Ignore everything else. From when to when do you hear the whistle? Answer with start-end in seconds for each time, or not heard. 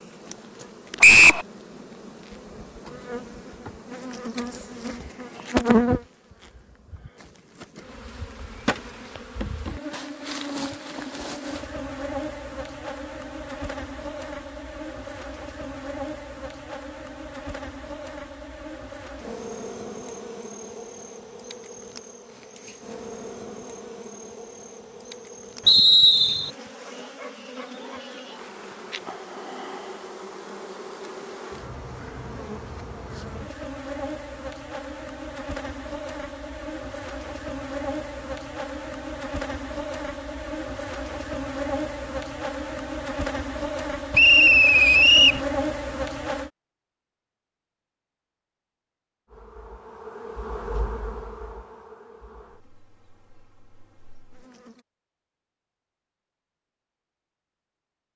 1.0-1.4, 25.6-26.5, 44.1-45.4.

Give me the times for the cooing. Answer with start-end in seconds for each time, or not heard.
not heard.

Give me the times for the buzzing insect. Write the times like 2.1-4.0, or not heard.
0.0-46.5, 49.2-54.9.